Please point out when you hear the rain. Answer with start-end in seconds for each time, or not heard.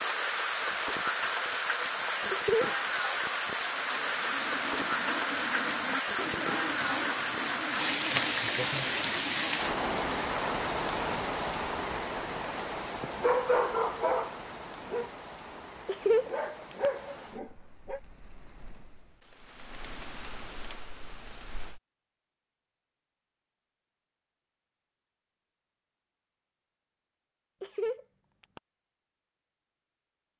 0.0-21.8.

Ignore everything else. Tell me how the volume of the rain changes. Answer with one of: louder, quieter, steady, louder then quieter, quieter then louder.
quieter.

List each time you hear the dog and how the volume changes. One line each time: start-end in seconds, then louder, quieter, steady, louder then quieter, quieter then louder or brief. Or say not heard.
13.0-18.0 quieter then louder.